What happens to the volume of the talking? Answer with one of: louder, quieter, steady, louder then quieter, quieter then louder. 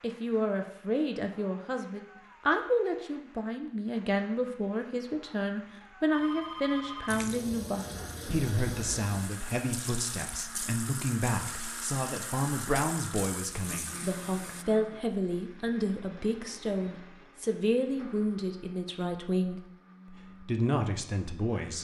steady.